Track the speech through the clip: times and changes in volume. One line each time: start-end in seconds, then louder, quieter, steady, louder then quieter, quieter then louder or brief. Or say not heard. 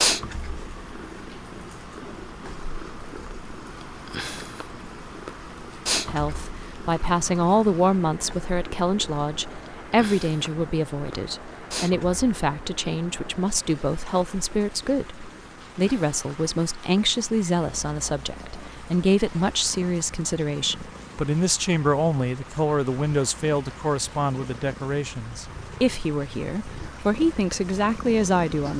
6.0-28.7 steady.